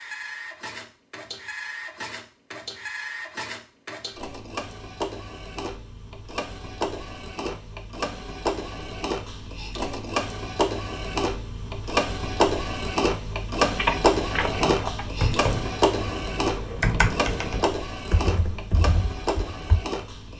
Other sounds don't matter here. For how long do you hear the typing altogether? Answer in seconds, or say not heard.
6 s.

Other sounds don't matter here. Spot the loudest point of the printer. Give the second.
14 s.